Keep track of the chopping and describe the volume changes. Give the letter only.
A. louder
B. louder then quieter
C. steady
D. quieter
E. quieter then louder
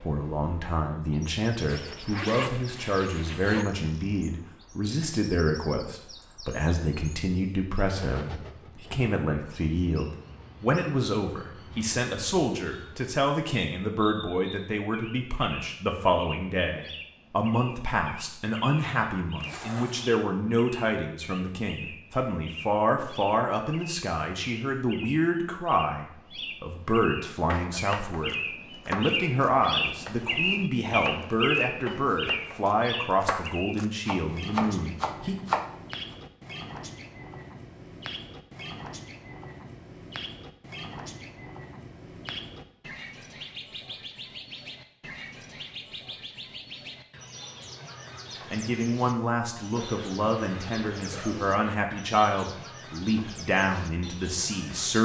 E.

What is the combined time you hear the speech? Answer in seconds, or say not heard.
42 s.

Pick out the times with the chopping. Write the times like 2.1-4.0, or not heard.
27.4-35.7.